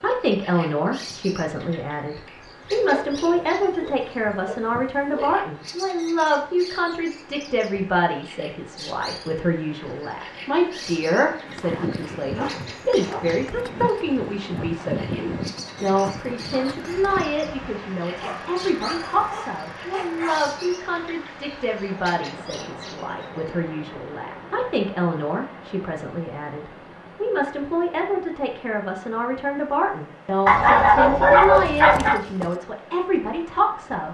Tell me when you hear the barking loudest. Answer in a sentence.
The volume of the barking peaks at 31 seconds.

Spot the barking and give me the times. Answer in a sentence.
You can hear the barking from 2.7 to 5.4 s, from 12.3 to 13.4 s, from 18.2 to 20.5 s and from 30.4 to 32.2 s.